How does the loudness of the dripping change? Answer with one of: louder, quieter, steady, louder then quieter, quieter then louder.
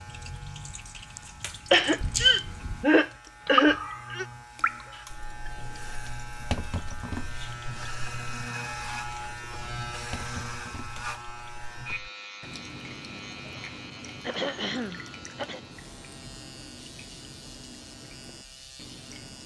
quieter.